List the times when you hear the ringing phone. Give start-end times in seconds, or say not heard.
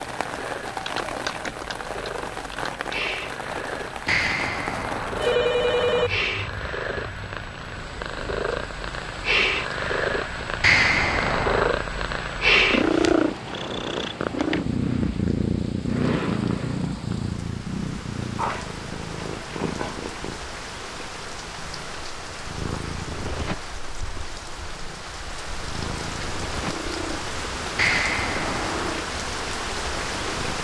4.0-6.1, 10.6-11.8, 27.8-28.9.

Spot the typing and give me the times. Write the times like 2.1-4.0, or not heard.
0.8-3.1.